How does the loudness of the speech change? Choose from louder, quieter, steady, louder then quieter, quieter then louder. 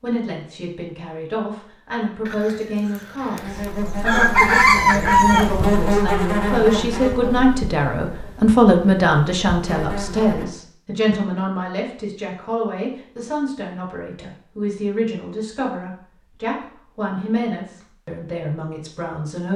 louder then quieter.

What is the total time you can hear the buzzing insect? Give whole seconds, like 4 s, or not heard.
7 s.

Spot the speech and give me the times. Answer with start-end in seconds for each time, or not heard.
0.0-19.5.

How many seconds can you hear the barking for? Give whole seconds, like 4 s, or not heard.
not heard.